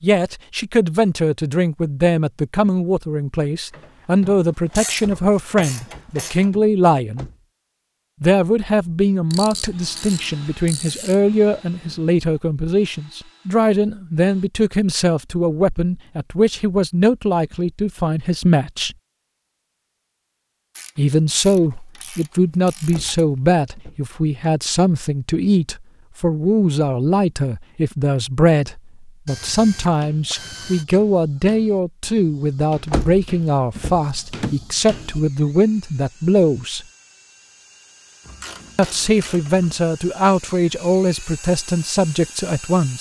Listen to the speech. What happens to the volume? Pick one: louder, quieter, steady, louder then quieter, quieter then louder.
steady.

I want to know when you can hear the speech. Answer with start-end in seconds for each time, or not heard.
0.0-7.3, 8.2-18.9, 20.9-36.9, 38.8-42.9.